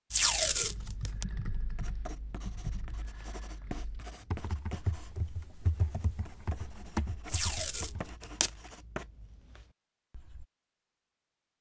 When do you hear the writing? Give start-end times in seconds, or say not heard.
1.7-10.4.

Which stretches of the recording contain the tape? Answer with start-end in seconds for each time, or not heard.
0.1-1.2, 7.3-8.5.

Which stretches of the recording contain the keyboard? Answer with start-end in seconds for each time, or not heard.
0.2-8.2.